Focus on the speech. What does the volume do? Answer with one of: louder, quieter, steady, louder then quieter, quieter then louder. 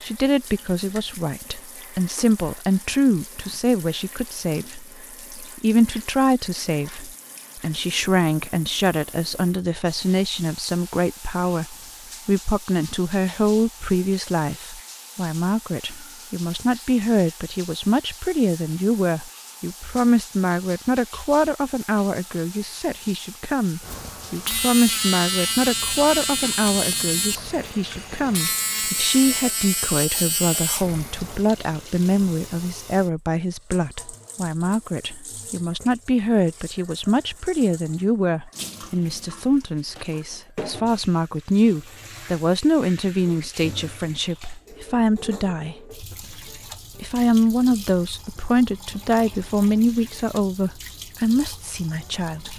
steady.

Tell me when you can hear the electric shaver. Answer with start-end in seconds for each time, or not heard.
23.8-31.4.